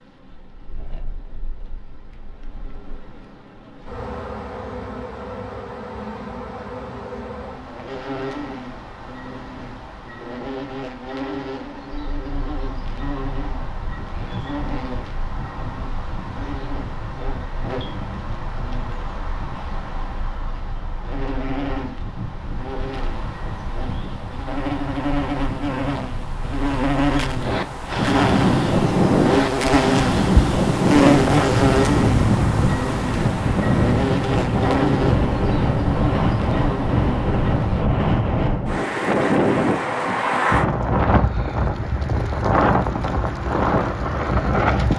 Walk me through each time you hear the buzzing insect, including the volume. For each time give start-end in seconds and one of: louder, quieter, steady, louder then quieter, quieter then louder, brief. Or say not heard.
0.0-37.9 louder.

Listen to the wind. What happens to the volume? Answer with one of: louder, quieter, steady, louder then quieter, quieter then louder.
louder.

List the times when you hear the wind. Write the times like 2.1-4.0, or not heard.
11.9-44.9.